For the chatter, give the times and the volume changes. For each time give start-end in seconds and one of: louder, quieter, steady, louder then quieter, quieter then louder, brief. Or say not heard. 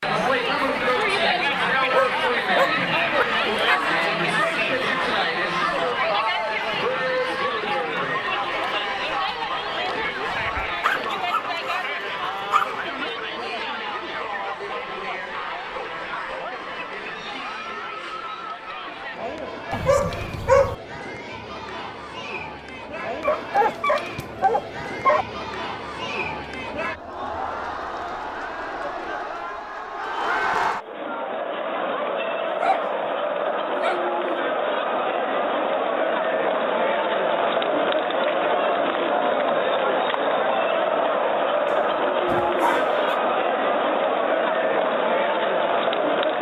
0.0-46.3 quieter then louder.